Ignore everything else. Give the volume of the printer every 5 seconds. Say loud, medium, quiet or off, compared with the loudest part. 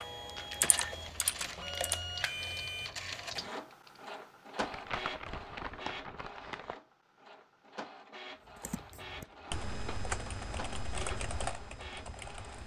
loud, medium, medium.